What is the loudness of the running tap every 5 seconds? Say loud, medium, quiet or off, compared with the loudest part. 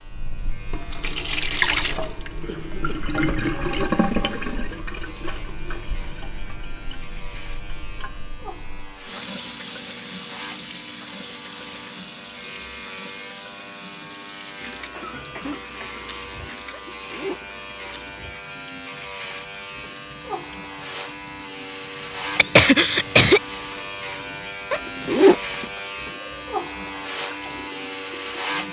loud, quiet, quiet, quiet, quiet, quiet.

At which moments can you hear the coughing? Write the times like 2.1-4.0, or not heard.
2.5-3.0, 14.9-16.1, 22.4-23.4.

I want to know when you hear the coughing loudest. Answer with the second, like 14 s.
23 s.